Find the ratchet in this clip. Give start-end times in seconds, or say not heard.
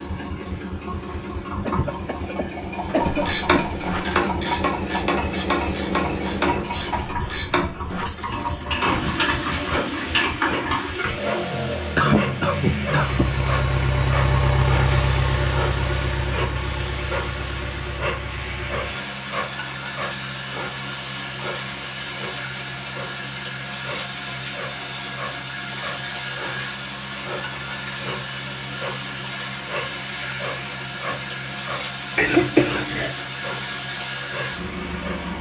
2.9-10.9.